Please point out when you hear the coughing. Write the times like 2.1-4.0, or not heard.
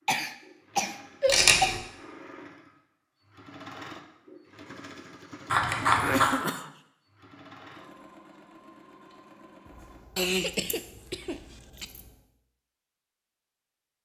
0.1-1.8, 5.8-6.7, 10.2-11.8.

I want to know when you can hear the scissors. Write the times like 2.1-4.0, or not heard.
1.2-1.8, 5.5-6.3, 9.7-12.1.